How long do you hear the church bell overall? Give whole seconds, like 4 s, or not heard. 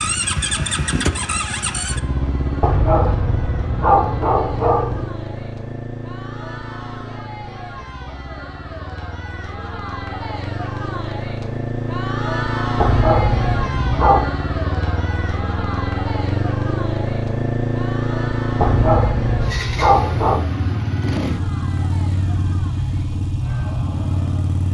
not heard.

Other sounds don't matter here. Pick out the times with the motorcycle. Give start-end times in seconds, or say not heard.
0.0-24.6.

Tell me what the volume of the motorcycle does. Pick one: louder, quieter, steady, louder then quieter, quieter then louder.
quieter then louder.